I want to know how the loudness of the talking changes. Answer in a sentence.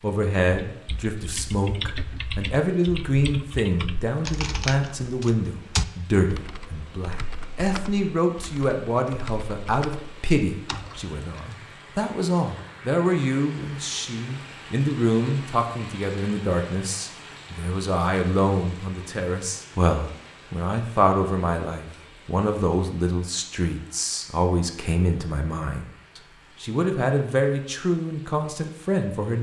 The loudness of the talking stays about the same.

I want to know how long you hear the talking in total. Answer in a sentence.
You can hear the talking for 29 seconds altogether.